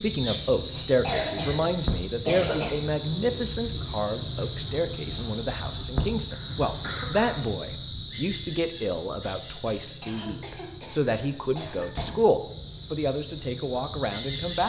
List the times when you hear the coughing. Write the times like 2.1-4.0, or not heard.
0.8-2.8, 6.3-7.5, 10.0-12.2.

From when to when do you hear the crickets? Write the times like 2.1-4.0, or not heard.
0.0-14.6.